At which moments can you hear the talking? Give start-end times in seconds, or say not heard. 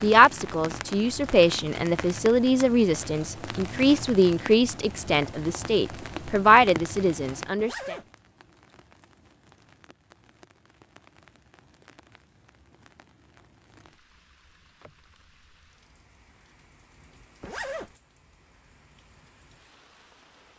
0.0-8.0.